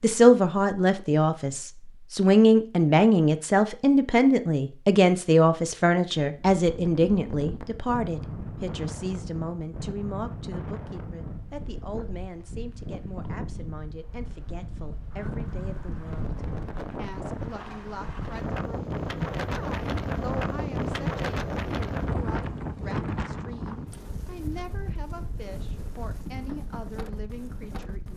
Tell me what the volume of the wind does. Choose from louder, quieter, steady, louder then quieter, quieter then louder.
louder then quieter.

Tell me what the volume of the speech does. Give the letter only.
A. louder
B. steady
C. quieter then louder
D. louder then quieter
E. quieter
E.